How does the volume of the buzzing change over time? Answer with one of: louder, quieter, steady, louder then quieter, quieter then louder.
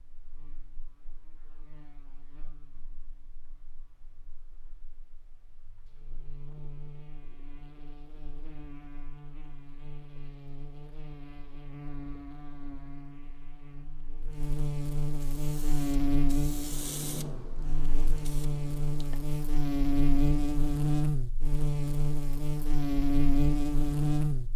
louder.